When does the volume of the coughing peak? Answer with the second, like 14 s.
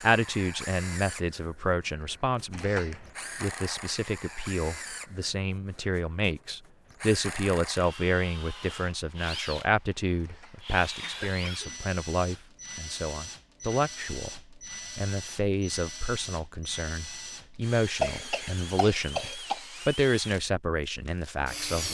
18 s.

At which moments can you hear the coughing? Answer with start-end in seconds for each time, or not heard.
2.5-3.1, 10.2-11.8, 18.0-19.6.